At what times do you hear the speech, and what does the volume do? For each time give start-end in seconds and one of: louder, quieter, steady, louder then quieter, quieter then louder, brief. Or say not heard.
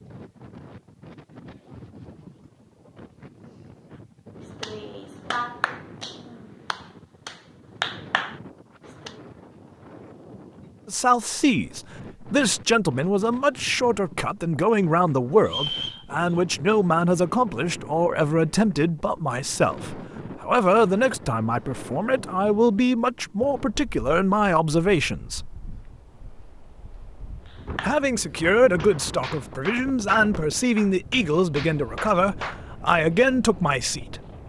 10.8-25.6 steady
27.8-34.2 steady.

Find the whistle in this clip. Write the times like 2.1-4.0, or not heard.
15.4-16.4.